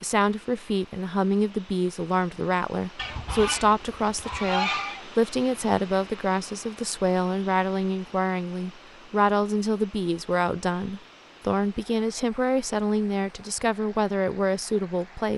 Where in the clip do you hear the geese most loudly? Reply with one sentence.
The volume of the geese peaks at 5 seconds.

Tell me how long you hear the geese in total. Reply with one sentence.
The geese can be heard for 2 seconds in total.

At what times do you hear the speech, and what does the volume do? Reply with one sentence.
You can hear the speech from 0.0 to 15.3 s, at a steady volume.